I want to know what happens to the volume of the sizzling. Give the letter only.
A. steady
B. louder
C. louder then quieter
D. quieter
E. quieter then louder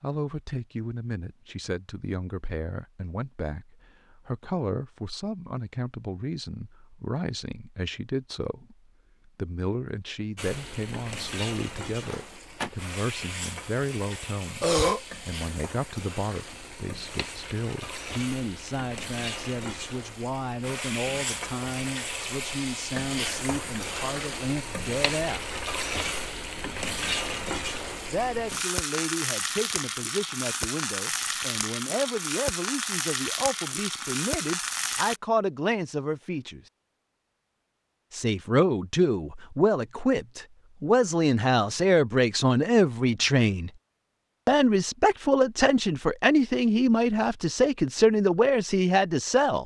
B.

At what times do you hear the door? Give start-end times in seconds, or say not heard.
12.0-12.7.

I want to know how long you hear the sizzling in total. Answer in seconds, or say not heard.
25 s.